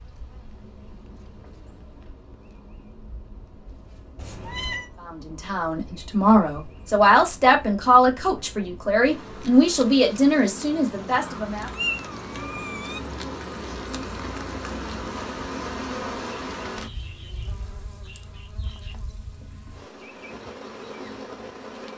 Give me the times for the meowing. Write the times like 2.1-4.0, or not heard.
4.2-4.9, 11.1-13.0.